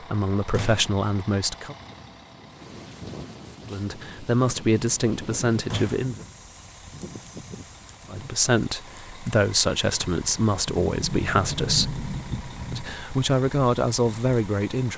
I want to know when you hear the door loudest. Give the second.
12 s.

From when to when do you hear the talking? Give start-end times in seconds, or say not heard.
0.0-1.8, 3.6-6.2, 8.1-11.9, 12.7-14.9.